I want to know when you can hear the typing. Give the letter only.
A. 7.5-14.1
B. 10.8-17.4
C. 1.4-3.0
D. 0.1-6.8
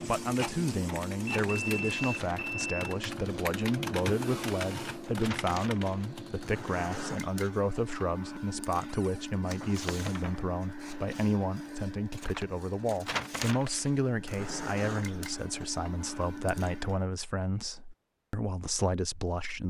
D.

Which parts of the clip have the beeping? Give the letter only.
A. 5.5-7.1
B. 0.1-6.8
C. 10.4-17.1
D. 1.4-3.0
D.